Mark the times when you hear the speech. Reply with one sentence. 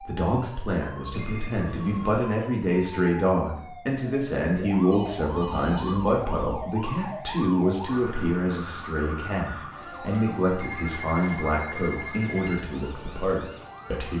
The speech can be heard from 0.0 to 14.1 s.